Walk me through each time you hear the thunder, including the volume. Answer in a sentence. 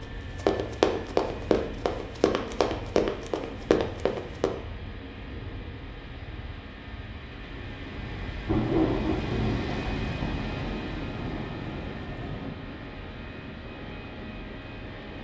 You can hear the thunder from 8.4 to 12.5 s, getting quieter.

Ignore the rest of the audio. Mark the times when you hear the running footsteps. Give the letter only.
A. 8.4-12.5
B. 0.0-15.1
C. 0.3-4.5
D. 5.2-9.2
C.